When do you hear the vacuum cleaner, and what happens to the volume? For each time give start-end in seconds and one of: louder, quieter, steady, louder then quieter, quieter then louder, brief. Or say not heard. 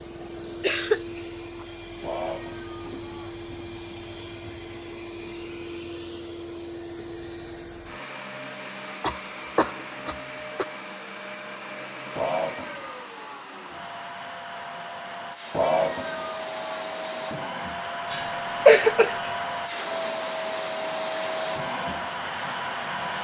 0.0-23.1 louder.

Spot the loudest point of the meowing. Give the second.
16 s.